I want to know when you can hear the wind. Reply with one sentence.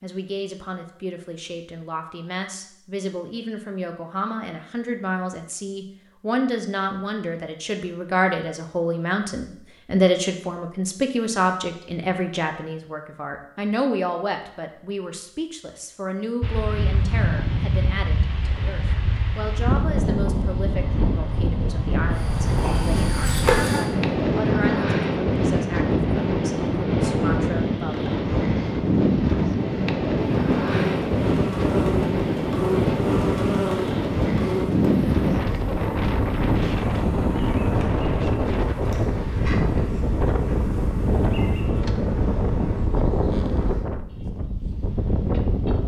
You can hear the wind from 16.4 to 45.8 s.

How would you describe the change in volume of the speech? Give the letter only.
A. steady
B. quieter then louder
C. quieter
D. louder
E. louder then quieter
E.